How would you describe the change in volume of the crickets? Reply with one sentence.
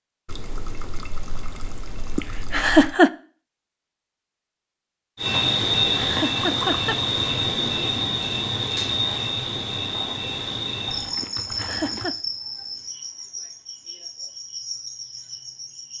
The loudness of the crickets goes down.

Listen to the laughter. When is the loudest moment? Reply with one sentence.
The loudest moment of the laughter is at 3 seconds.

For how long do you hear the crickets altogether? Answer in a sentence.
You can hear the crickets for 11 seconds altogether.